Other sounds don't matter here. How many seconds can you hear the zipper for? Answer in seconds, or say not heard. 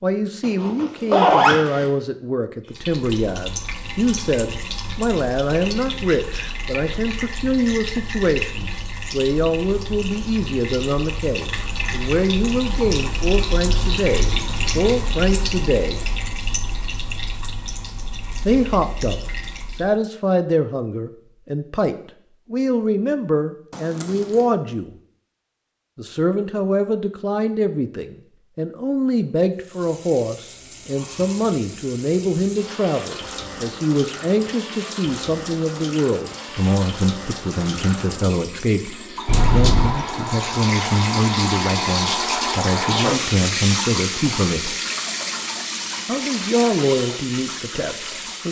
3 s.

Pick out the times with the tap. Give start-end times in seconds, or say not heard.
2.6-20.0, 29.6-48.4.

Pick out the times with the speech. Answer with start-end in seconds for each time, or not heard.
0.0-16.0, 18.4-24.9, 25.9-44.8, 46.0-48.4.